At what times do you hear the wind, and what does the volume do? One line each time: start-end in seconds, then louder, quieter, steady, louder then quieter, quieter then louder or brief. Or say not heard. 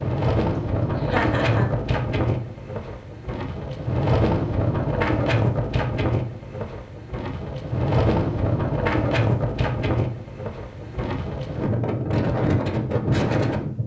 0.0-13.8 steady.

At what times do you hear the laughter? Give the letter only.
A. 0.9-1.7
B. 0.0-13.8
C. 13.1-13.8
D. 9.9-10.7
A.